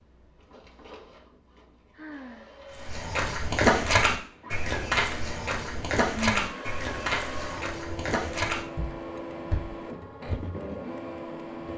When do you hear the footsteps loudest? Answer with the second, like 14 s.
4 s.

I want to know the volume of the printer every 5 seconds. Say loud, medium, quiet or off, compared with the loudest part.
quiet, loud, loud.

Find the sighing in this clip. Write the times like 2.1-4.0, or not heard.
1.9-2.5, 6.0-6.6.